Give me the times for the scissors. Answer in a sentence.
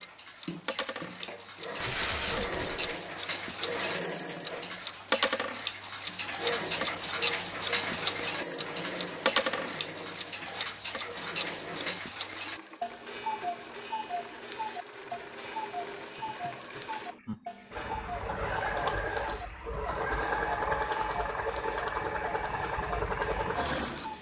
You can't hear the scissors here.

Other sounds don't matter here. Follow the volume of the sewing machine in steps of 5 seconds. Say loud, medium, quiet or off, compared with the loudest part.
medium, medium, quiet, medium, loud.